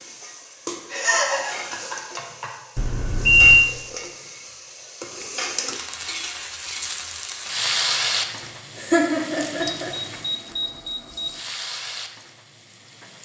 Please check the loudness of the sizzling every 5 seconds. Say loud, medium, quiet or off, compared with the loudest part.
medium, loud, medium.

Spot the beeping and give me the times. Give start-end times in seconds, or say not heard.
2.8-3.6, 9.8-11.4.